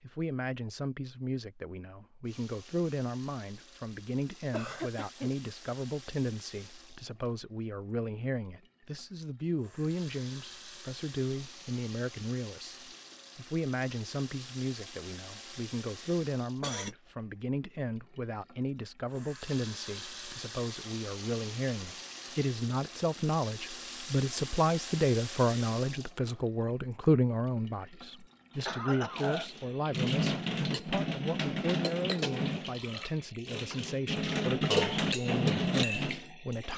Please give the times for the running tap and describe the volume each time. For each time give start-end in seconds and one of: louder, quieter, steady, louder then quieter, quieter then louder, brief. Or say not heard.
2.2-36.7 louder.